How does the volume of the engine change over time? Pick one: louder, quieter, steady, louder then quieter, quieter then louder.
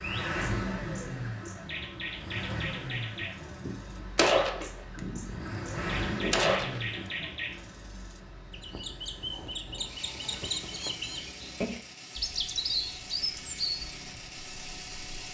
quieter.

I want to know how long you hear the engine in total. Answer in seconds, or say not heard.
15 s.